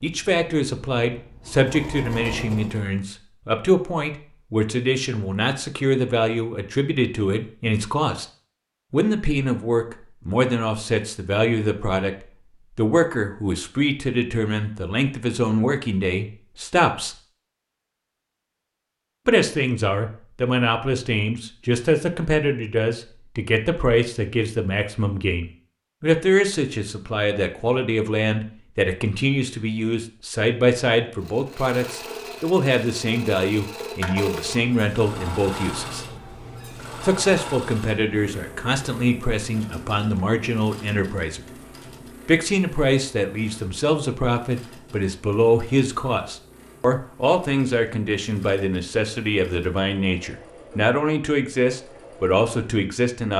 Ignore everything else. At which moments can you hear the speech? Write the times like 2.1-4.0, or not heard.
0.0-8.2, 8.9-17.1, 19.2-36.0, 37.0-41.6, 42.2-53.3.